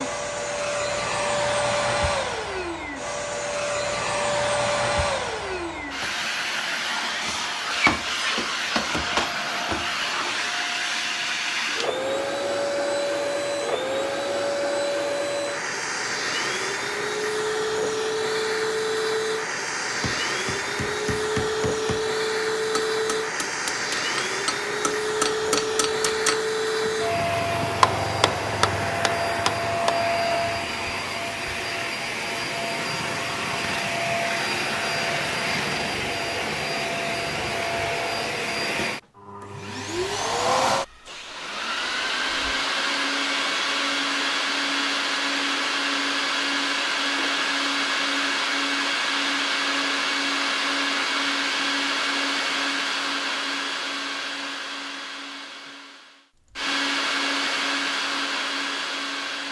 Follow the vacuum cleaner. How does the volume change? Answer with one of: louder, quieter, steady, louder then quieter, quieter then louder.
steady.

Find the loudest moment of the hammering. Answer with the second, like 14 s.
28 s.